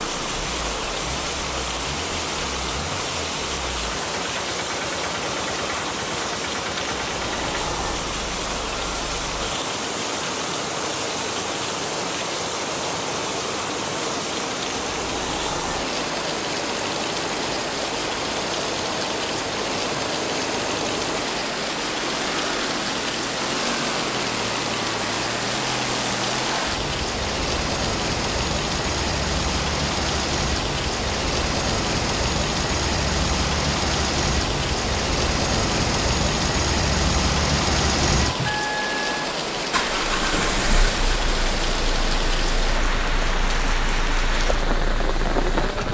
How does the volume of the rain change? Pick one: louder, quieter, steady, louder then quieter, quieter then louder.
steady.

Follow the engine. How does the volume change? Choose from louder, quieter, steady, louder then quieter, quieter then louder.
louder.